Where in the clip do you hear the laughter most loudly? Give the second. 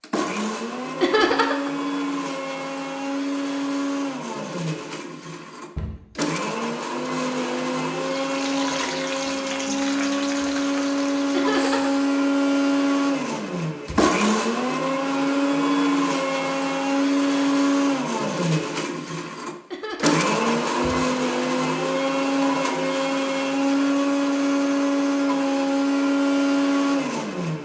1 s.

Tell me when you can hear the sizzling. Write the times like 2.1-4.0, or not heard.
8.1-12.0.